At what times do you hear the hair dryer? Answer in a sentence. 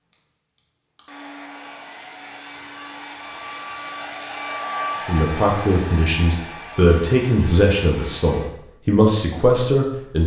The hair dryer can be heard from 0.1 to 8.5 s.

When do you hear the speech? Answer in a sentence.
You can hear the speech from 5.0 to 10.2 s.